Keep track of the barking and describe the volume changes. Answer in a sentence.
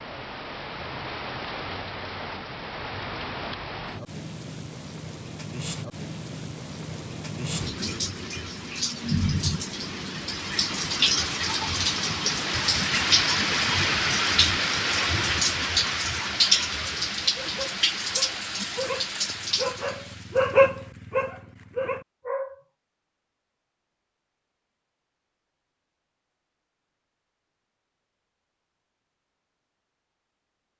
The loudness of the barking goes up, then down.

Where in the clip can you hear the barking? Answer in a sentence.
You can hear the barking from 17.2 to 22.6 s.